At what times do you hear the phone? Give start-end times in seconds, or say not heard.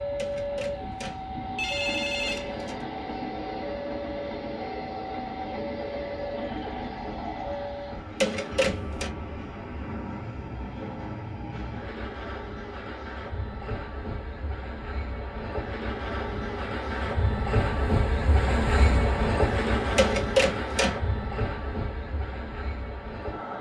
0.1-2.8, 8.2-9.1, 19.9-20.9.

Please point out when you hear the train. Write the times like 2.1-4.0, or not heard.
0.0-23.5.